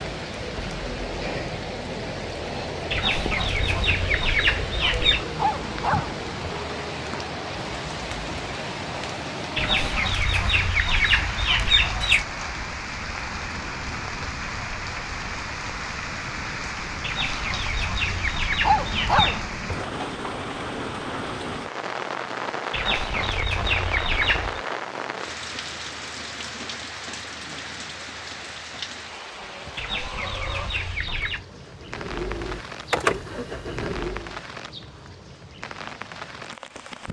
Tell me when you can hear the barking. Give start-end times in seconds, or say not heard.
5.3-6.6, 18.6-19.9.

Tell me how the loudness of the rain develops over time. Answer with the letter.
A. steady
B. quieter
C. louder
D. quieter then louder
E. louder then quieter
B.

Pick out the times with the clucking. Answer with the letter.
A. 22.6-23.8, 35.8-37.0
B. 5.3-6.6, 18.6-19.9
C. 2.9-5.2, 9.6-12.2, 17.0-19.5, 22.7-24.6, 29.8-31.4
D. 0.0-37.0
C.